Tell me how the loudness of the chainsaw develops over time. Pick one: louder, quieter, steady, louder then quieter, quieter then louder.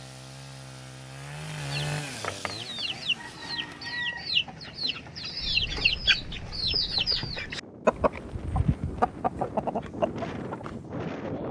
louder then quieter.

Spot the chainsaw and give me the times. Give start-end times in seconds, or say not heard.
0.0-4.2.